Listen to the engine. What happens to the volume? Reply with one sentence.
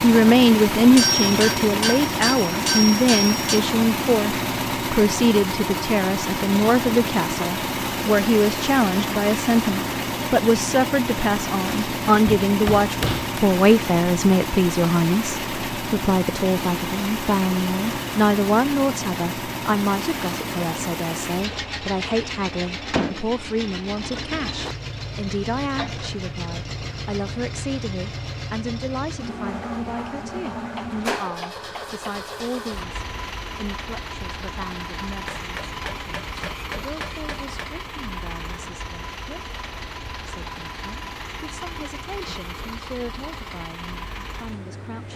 The loudness of the engine goes down.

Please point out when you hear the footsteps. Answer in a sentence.
You can't hear the footsteps here.